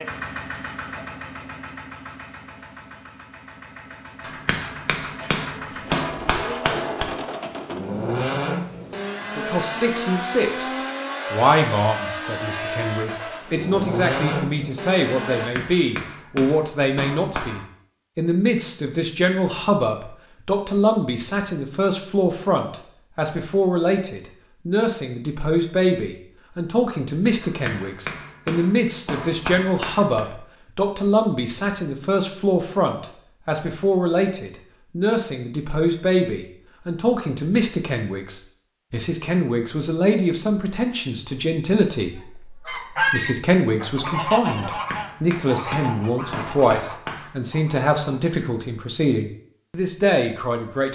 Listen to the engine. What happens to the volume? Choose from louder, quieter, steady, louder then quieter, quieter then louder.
louder.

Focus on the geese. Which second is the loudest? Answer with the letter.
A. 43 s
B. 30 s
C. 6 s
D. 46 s
A.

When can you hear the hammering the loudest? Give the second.
6 s.